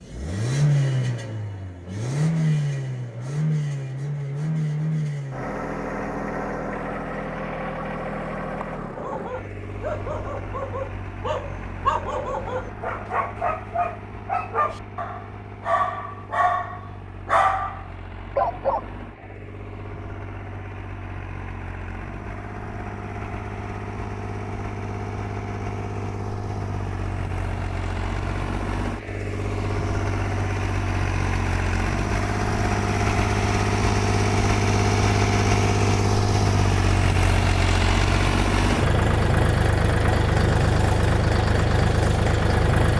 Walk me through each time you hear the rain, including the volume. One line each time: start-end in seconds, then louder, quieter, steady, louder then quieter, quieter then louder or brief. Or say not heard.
not heard.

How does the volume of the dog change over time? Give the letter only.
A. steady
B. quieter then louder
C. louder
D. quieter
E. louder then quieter
C.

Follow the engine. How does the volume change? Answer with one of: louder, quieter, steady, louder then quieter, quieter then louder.
quieter then louder.